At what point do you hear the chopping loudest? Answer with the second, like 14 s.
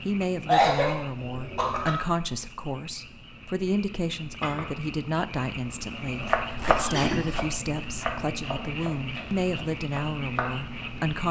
7 s.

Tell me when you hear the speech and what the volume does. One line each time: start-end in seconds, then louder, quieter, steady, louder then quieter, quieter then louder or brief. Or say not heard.
0.1-11.2 steady.